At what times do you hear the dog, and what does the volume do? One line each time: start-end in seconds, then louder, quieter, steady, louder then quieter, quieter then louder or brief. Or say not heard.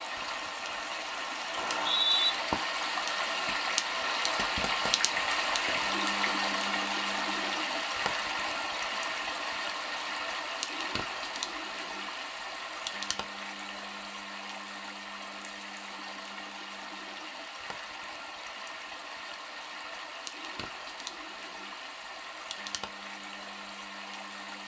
not heard.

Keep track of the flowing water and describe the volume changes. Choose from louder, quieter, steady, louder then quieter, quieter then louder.
quieter.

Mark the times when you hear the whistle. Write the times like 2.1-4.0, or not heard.
1.6-2.3.